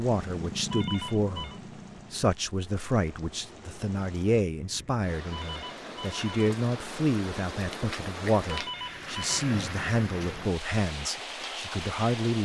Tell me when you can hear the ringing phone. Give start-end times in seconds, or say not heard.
0.7-1.6, 5.3-6.5, 8.4-9.4.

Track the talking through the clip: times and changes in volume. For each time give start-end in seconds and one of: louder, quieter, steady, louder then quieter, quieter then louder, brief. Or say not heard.
0.0-12.4 steady.